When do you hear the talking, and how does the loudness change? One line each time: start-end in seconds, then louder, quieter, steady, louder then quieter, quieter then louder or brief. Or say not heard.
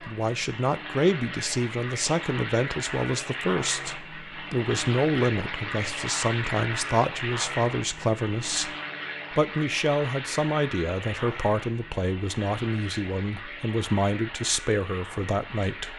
0.0-15.9 steady.